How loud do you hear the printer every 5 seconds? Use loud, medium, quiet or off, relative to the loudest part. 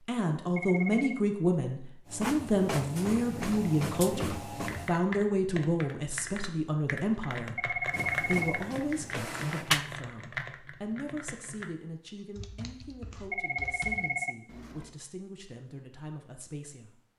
loud, loud, off, off.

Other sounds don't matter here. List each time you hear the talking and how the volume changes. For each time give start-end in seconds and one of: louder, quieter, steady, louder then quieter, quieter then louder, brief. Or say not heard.
0.1-17.0 quieter.